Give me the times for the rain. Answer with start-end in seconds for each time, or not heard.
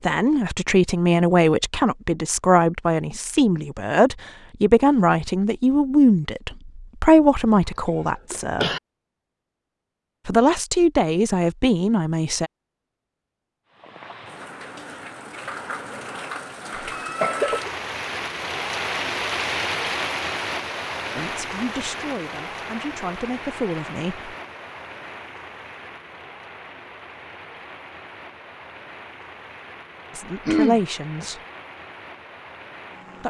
13.7-33.2.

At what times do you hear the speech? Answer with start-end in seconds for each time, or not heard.
0.0-8.7, 10.2-12.5, 21.1-24.3, 30.1-31.4.